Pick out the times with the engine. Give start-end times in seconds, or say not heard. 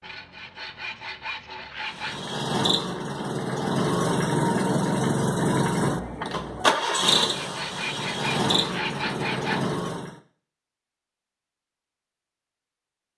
1.9-10.2.